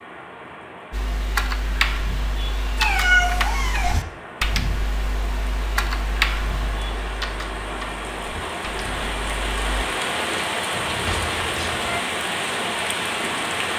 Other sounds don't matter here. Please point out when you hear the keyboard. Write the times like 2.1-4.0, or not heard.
0.9-9.8.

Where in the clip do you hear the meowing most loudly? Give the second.
3 s.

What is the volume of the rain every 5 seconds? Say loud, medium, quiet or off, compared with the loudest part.
quiet, medium, loud.